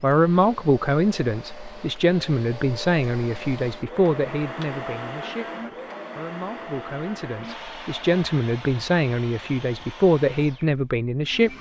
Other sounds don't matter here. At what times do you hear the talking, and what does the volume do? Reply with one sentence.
You can hear the talking from 0.0 to 11.5 s, getting quieter then louder.